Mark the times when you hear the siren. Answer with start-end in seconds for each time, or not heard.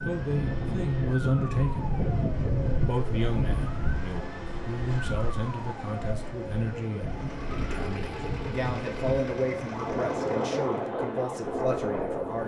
0.0-12.4.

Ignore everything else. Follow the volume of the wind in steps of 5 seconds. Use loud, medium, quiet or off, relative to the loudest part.
loud, medium, loud.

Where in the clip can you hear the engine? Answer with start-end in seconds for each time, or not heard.
7.0-10.9.